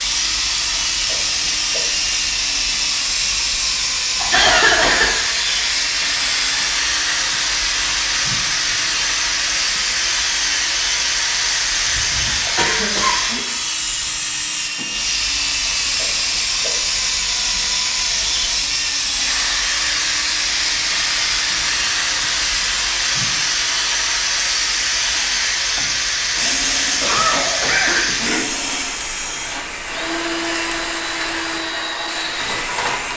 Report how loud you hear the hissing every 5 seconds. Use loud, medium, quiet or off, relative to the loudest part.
loud, loud, loud, loud, loud, loud, medium.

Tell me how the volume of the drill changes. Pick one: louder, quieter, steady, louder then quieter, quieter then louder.
steady.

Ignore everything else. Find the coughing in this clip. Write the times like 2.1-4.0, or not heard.
4.2-5.1, 11.8-13.2, 27.0-28.4.